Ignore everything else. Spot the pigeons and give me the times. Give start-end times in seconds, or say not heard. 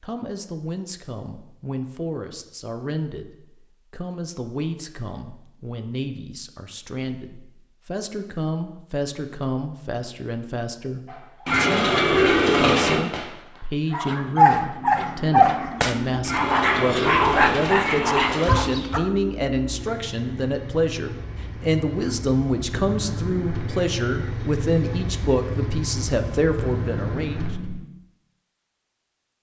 11.4-13.0, 16.2-18.7.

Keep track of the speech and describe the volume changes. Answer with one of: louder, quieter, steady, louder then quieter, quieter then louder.
louder.